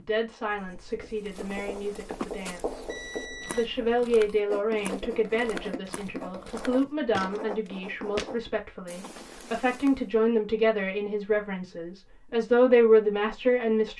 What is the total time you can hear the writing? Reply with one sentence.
You can hear the writing for 8 seconds altogether.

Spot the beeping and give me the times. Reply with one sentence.
The beeping can be heard from 2.7 to 3.8 s.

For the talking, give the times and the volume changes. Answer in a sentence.
The talking can be heard briefly from 0.0 to 2.9 s; and from 3.5 to 13.9 s, getting quieter then louder.